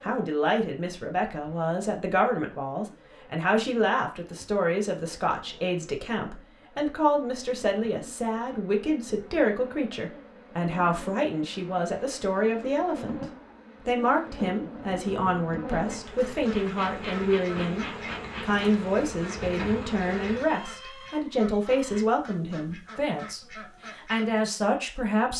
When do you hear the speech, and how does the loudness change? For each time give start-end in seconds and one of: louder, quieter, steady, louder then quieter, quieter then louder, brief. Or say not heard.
0.0-13.2 steady
13.8-25.3 steady.